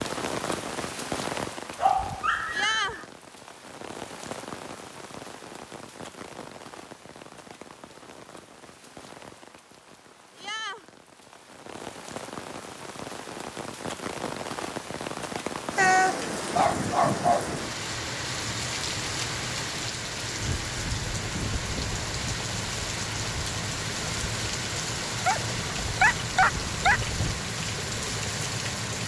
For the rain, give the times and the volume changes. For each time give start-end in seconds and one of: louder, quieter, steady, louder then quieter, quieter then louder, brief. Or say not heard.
0.0-29.0 quieter then louder.